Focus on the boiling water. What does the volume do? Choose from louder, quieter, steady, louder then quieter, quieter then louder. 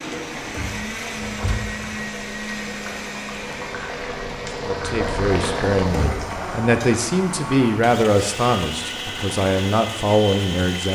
louder then quieter.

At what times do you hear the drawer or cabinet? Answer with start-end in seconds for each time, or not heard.
0.4-1.8, 5.8-6.3.